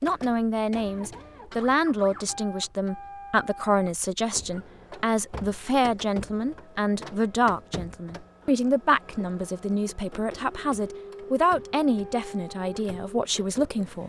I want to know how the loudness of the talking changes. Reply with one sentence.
The volume of the talking stays about the same.